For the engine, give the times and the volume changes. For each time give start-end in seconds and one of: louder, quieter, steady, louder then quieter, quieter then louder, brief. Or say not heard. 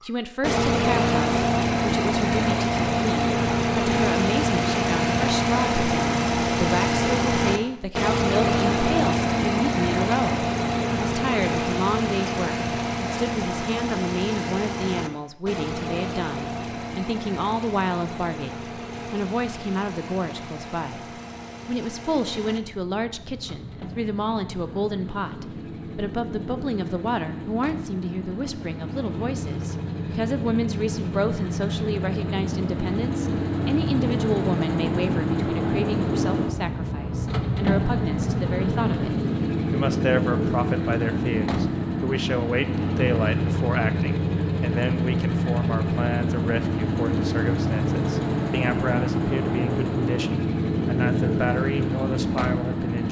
0.0-53.0 quieter then louder.